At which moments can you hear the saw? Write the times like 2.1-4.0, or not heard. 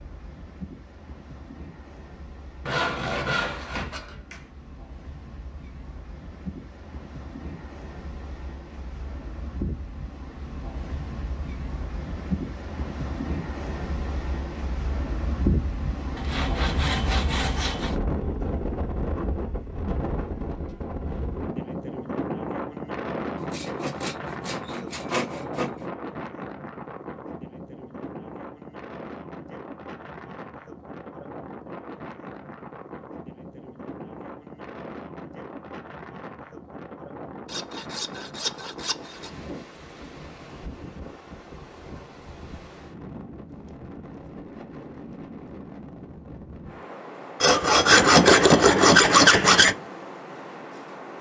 2.6-4.5, 16.1-17.9, 23.4-25.9, 37.5-39.3, 47.4-49.8.